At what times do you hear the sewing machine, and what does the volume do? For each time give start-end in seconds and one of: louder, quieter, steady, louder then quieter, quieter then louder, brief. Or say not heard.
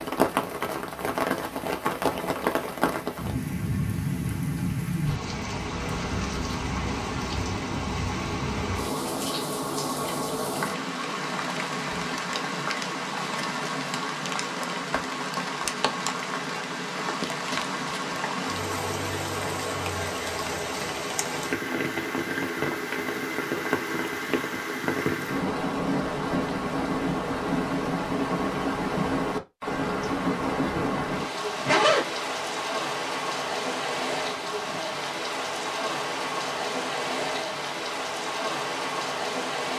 not heard.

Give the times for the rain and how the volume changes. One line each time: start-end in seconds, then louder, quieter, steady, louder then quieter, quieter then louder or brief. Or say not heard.
0.0-39.7 steady.